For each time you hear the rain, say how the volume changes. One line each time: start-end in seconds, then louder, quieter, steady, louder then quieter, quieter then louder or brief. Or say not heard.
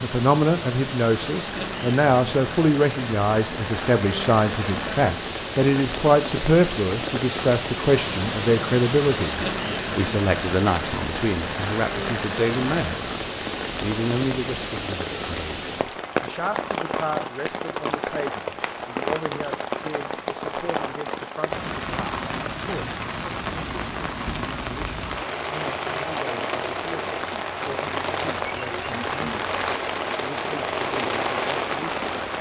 0.0-32.3 steady.